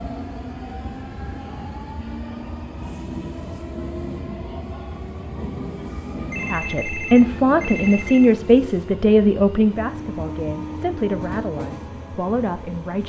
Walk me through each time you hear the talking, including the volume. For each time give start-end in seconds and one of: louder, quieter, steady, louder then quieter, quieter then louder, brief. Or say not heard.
6.5-13.0 quieter.